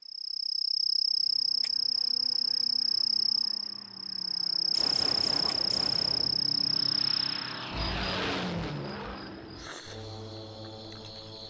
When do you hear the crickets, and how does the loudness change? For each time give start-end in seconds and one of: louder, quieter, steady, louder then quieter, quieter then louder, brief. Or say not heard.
0.0-11.4 quieter.